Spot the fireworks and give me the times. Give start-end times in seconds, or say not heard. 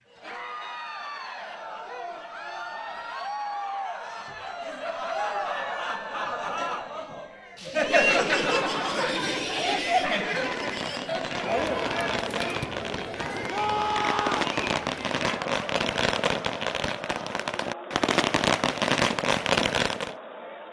10.2-20.1.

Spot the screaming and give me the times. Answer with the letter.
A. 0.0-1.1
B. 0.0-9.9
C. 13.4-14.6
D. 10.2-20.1
C.